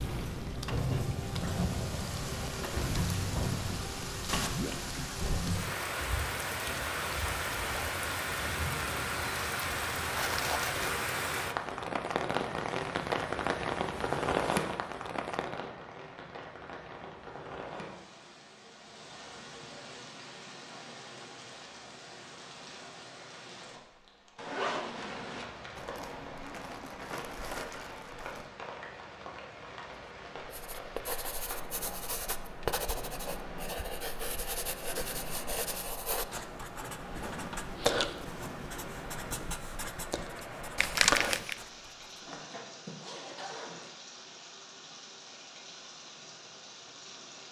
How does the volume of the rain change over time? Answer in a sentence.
The volume of the rain goes down.